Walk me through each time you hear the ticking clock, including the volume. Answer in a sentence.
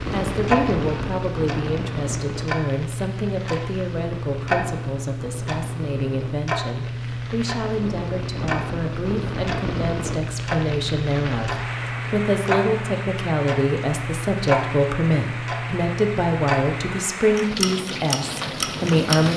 The ticking clock can be heard from 0.1 to 19.3 s, at a steady volume.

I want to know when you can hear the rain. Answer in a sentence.
You can hear the rain from 0.0 to 19.3 s.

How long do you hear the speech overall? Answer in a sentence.
The speech can be heard for 19 seconds in total.